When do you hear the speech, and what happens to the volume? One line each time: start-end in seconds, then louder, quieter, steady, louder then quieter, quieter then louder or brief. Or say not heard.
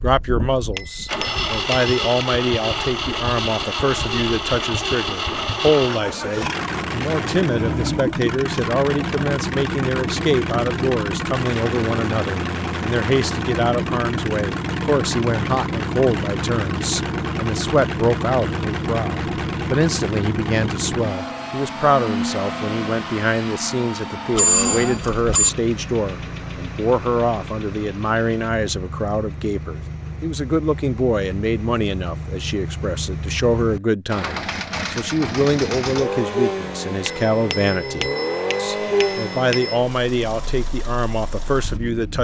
0.0-42.1 steady.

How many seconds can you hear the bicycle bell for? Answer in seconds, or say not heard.
5 s.